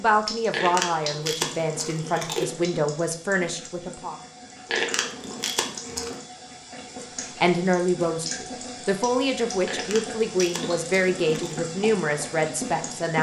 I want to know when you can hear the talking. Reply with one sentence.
The talking can be heard from 0.0 to 4.2 s and from 7.3 to 13.1 s.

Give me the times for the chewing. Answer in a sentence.
The chewing can be heard from 0.5 to 2.5 s, from 4.7 to 6.2 s and from 9.7 to 11.6 s.